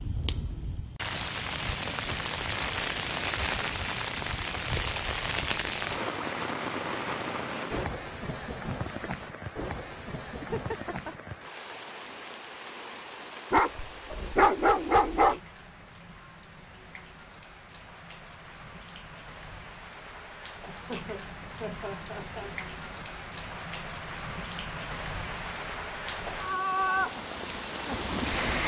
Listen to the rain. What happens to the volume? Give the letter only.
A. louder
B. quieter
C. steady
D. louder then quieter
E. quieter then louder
E.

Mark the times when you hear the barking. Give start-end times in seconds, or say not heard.
13.5-15.4.